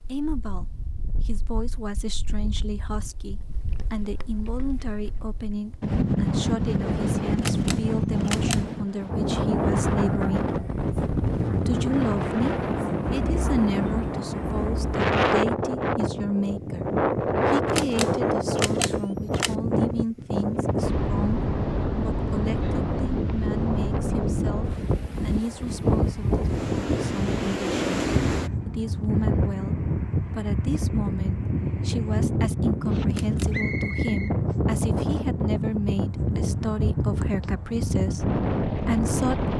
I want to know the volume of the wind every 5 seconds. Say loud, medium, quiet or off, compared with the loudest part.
quiet, loud, loud, loud, loud, loud, loud, loud.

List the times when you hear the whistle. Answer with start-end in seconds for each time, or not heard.
33.5-34.4.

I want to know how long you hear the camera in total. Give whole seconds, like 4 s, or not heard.
4 s.